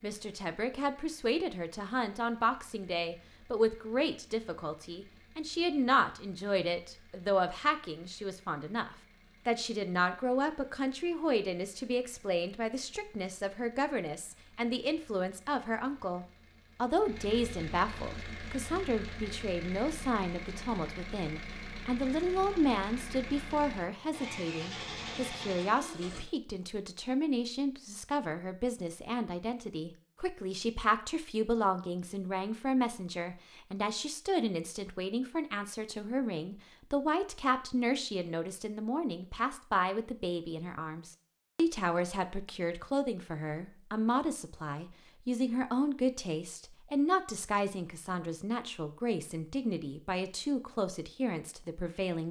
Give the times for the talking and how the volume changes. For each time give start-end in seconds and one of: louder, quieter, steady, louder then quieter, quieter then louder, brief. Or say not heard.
0.0-52.2 steady.